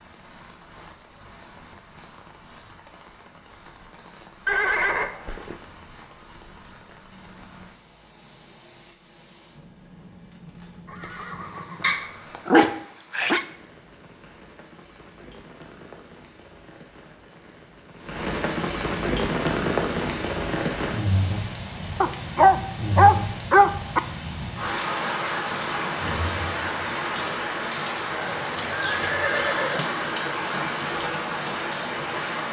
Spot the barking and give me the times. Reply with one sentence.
The barking can be heard from 11.8 to 13.4 s and from 22.0 to 24.0 s.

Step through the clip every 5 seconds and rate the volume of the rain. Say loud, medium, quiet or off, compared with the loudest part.
quiet, quiet, quiet, loud, loud, loud, loud.